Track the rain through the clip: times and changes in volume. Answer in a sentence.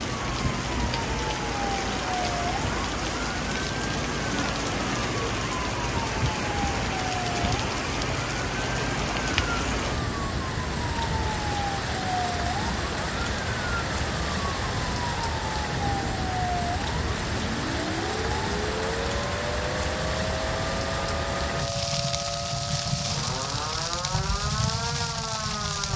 The rain can be heard from 0.0 to 25.9 s, at a steady volume.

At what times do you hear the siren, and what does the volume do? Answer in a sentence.
You can hear the siren from 0.0 to 25.9 s, at a steady volume.